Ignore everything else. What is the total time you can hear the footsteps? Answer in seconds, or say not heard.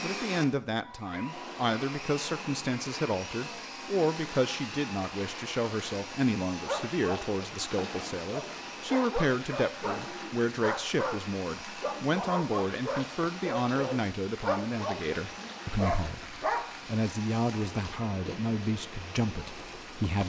not heard.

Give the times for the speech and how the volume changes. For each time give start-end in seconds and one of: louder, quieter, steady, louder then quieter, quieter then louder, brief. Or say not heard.
0.0-20.2 steady.